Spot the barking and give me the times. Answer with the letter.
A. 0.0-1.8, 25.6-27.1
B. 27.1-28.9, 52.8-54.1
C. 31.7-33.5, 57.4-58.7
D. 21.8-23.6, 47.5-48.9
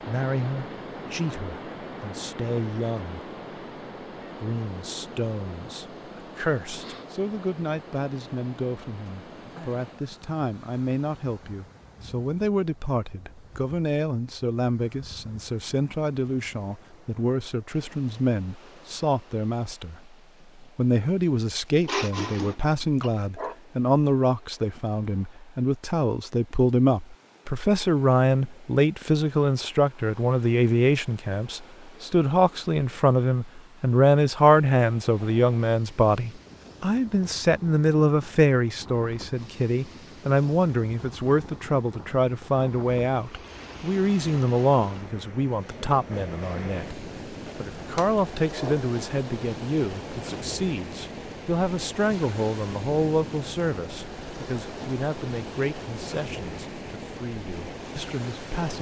D.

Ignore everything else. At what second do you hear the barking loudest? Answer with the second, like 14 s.
22 s.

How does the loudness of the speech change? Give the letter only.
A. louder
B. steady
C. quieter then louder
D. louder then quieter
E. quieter
D.